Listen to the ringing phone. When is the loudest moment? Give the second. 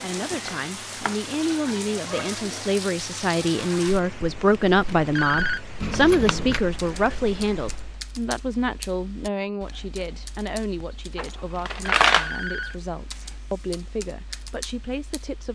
5 s.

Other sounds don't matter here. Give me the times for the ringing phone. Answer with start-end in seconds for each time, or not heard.
4.8-5.6, 11.6-12.8.